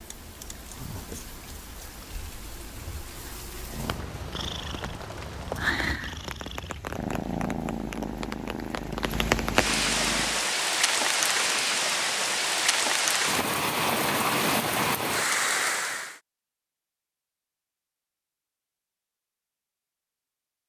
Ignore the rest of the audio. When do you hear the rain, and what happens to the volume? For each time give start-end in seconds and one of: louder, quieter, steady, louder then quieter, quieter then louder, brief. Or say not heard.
0.0-16.1 louder.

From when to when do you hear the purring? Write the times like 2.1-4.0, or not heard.
3.6-10.4.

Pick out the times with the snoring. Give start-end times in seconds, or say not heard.
not heard.